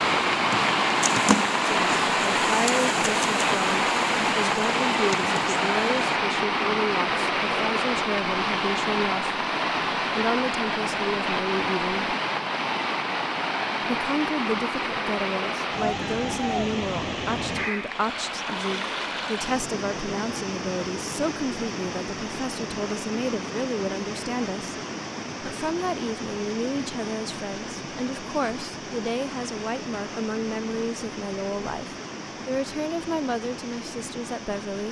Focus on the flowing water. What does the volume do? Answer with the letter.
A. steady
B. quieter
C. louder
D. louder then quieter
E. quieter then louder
B.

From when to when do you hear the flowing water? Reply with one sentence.
The flowing water can be heard from 0.0 to 34.8 s.